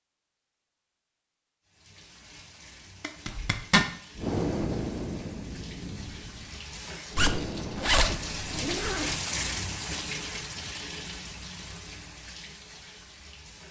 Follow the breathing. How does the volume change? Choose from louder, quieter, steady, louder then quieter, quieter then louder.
quieter then louder.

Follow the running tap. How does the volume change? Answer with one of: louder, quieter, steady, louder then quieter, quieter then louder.
louder then quieter.